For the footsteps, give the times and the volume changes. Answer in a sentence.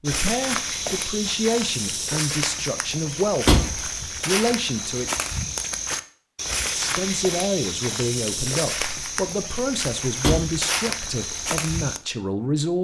You can hear the footsteps from 0.1 to 12.0 s, at a steady volume.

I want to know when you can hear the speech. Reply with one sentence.
You can hear the speech from 0.0 to 5.2 s and from 6.7 to 12.7 s.